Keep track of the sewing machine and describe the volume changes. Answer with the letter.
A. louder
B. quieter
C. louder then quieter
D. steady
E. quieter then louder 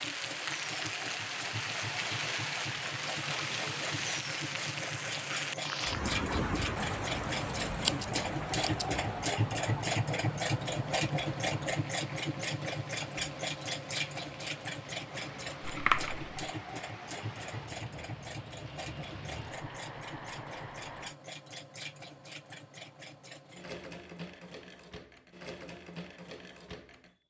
C.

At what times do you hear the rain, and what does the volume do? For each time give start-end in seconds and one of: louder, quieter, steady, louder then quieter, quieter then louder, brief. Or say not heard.
0.0-21.1 quieter.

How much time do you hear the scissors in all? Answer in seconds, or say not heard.
2 s.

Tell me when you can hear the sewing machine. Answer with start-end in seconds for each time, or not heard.
0.0-27.1.